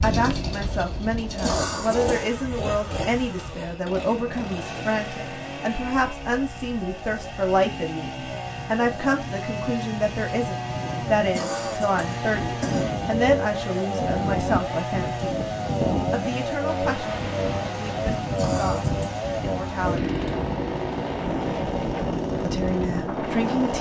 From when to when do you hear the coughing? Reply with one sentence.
The coughing can be heard from 1.4 to 2.1 s, from 11.3 to 12.9 s and from 18.4 to 19.2 s.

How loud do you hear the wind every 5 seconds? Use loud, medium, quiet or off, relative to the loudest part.
medium, medium, loud, loud, loud.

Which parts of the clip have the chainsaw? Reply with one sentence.
The chainsaw can be heard from 0.0 to 23.7 s.